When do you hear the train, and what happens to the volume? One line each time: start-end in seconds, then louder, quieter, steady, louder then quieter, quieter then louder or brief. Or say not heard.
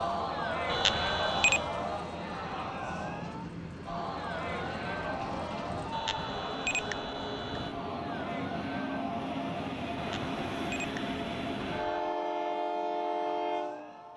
0.0-14.1 louder.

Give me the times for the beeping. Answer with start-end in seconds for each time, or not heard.
0.7-1.6, 5.9-7.8, 9.9-12.1.